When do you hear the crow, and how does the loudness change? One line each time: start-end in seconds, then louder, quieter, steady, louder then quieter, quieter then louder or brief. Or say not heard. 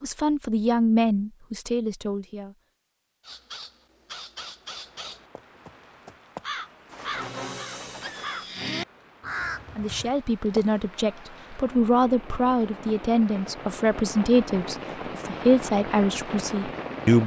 3.2-10.8 louder.